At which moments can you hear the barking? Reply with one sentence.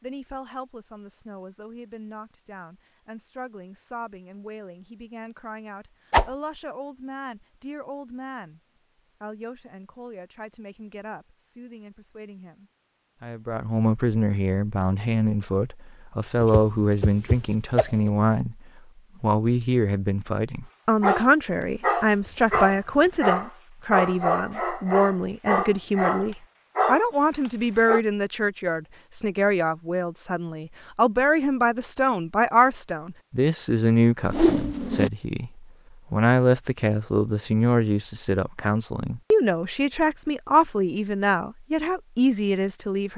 You can hear the barking from 21.0 to 28.0 s.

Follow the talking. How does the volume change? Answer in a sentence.
The loudness of the talking goes up.